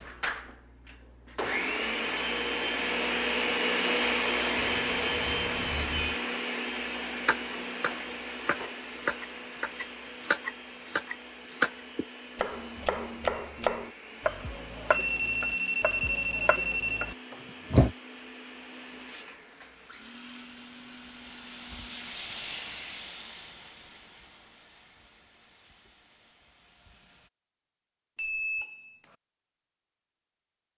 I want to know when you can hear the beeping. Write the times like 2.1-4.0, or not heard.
4.5-6.2, 14.9-17.1, 28.1-29.1.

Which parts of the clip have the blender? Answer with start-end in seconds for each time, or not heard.
0.0-22.1.